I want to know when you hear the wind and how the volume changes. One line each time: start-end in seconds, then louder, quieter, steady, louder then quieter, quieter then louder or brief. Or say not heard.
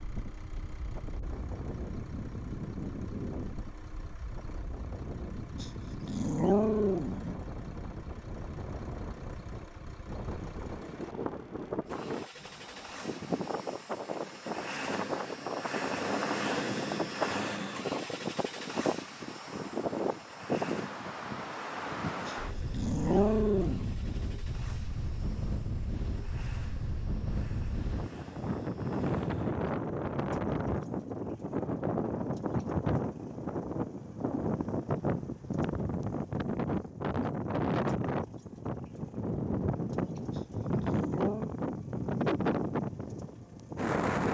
0.0-44.2 louder.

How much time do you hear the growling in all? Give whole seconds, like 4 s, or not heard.
5 s.